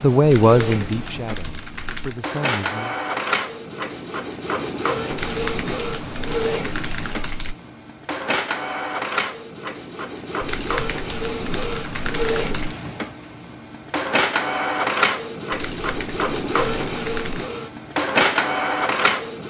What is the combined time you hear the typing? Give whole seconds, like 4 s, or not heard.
9 s.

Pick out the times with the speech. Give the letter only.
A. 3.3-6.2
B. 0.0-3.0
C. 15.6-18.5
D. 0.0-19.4
B.